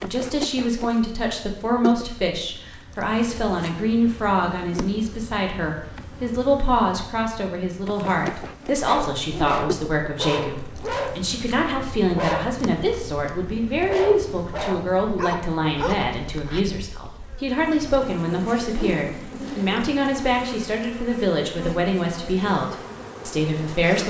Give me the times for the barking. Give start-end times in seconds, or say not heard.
8.8-16.6.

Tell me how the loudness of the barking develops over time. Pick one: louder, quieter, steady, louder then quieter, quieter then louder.
steady.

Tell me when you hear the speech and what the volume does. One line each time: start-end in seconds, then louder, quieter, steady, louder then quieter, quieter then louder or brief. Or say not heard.
0.0-24.0 steady.